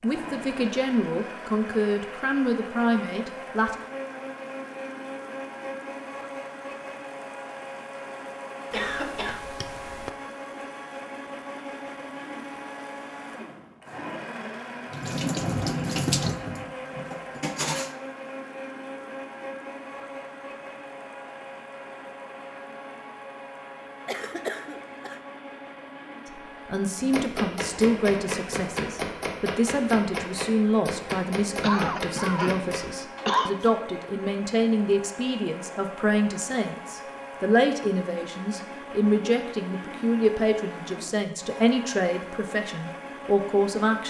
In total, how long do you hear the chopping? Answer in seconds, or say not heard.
7 s.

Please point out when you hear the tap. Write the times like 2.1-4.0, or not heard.
14.9-17.9.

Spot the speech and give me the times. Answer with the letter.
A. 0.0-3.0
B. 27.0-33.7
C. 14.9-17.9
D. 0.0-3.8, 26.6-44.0
D.